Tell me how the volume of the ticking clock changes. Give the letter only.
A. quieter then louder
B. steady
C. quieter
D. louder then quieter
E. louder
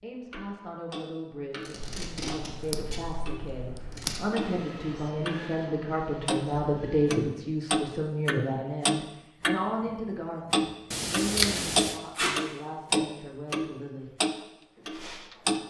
E.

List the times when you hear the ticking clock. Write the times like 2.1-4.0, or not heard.
0.3-5.5, 6.2-15.6.